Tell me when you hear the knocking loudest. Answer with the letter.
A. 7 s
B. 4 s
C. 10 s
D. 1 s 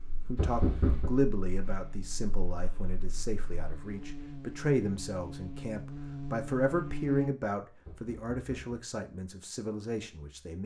D.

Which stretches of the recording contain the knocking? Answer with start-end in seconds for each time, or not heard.
0.3-1.1, 7.8-8.8.